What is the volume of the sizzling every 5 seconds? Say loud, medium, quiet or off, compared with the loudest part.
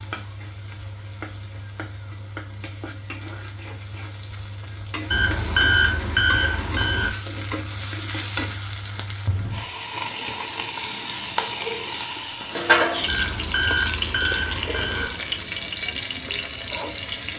quiet, medium, loud, loud.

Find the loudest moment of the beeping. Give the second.
6 s.